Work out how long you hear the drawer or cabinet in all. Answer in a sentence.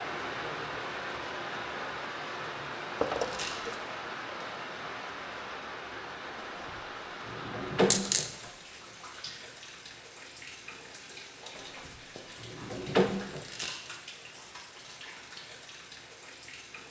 The drawer or cabinet can be heard for 5 seconds in total.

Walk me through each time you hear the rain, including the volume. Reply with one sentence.
The rain can be heard from 0.0 to 16.8 s, getting quieter.